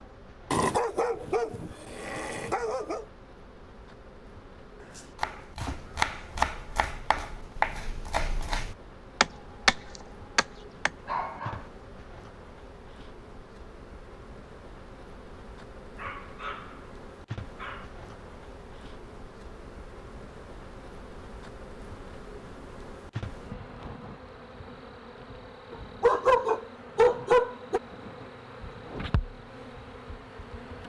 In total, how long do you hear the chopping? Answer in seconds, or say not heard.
6 s.